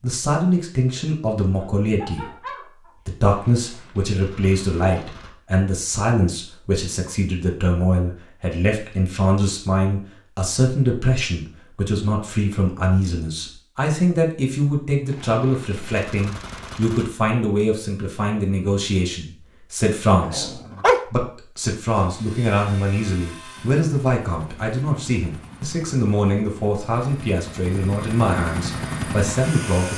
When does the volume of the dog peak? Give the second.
21 s.